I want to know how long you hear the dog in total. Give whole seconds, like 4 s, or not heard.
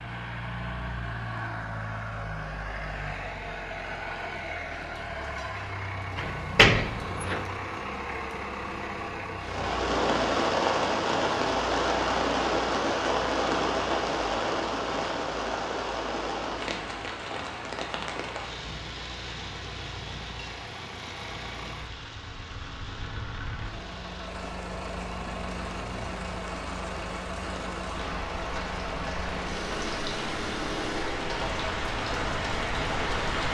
not heard.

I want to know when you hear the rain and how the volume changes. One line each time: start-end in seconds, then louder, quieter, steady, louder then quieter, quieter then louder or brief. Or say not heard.
9.3-33.4 quieter then louder.